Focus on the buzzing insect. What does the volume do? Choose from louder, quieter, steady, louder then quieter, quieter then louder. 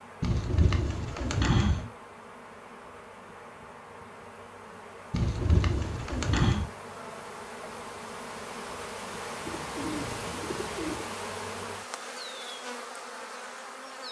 louder.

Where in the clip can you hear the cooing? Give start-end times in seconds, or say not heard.
0.2-1.9, 5.1-6.7, 9.4-11.1.